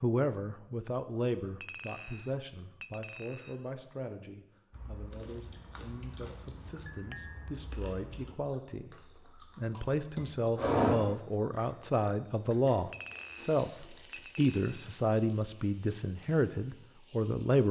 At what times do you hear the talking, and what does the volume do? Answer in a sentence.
The talking can be heard from 0.0 to 17.6 s, getting quieter then louder.